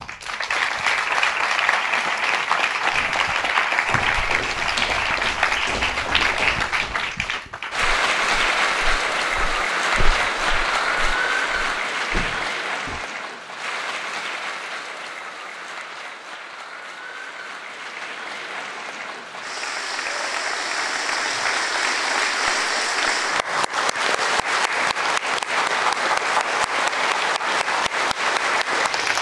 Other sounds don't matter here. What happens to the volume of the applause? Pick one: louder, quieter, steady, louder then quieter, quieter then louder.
quieter then louder.